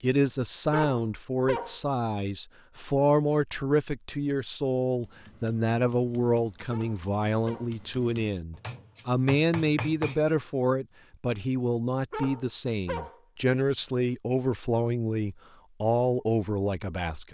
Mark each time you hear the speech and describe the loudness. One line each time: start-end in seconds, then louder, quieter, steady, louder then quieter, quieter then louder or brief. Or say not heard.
0.0-17.3 steady.